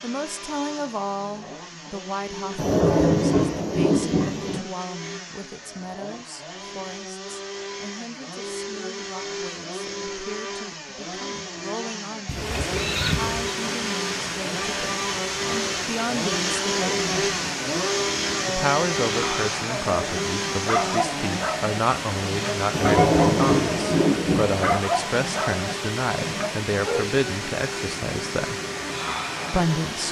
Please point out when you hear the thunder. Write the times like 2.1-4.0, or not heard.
2.5-4.6, 22.7-24.8.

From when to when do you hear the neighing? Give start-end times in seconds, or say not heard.
12.2-13.6.